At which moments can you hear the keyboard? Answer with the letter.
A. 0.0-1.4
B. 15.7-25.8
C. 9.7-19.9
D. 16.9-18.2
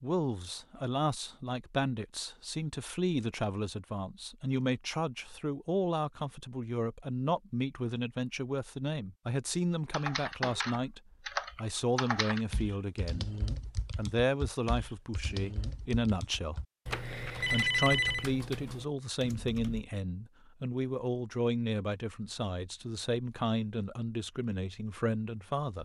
C.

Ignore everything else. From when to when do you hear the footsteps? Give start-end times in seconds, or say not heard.
not heard.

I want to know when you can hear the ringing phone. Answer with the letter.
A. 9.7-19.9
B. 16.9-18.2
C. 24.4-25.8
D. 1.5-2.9
B.